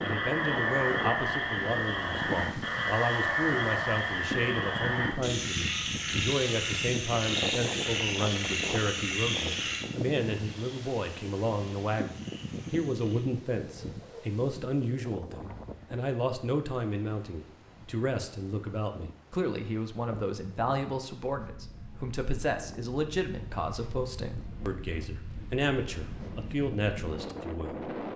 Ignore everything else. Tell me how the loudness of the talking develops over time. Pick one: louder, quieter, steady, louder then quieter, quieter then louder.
steady.